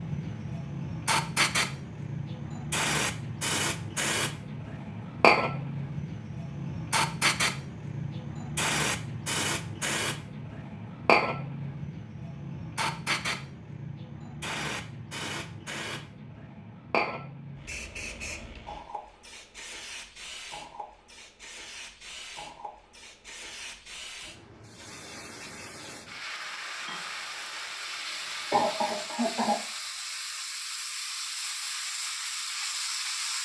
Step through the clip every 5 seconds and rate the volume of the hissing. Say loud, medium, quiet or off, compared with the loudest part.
loud, loud, loud, medium, quiet, medium, medium.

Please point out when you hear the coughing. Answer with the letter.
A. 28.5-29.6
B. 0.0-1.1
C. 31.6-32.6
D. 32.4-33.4
A.